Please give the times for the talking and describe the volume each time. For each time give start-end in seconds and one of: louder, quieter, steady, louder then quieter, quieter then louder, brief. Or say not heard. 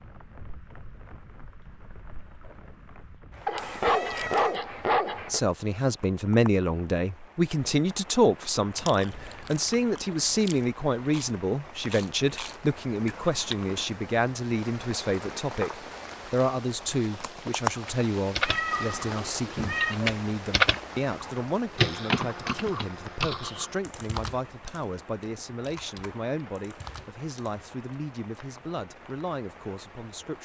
5.3-30.4 quieter.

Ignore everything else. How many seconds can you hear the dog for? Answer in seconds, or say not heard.
2 s.